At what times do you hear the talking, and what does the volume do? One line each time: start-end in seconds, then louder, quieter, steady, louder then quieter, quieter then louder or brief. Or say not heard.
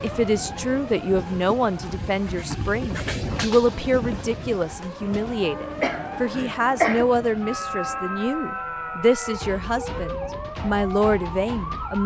0.0-12.0 steady.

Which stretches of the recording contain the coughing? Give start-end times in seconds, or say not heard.
5.8-7.0.